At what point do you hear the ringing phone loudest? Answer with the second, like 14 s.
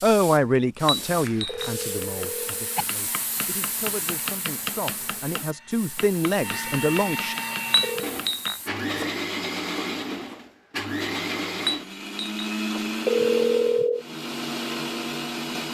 13 s.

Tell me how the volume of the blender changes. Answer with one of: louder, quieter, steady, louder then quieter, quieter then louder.
louder.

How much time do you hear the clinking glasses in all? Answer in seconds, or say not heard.
3 s.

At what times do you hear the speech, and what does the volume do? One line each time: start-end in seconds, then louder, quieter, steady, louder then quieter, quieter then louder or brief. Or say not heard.
0.0-7.3 quieter then louder.